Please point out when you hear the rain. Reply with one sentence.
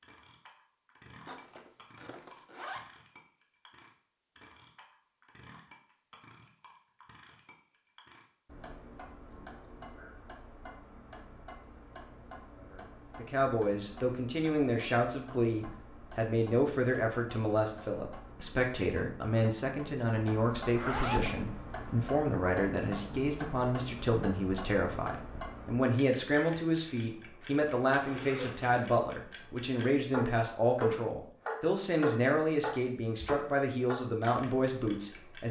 The rain can't be heard in this clip.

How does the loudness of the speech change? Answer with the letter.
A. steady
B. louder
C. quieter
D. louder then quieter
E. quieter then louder
A.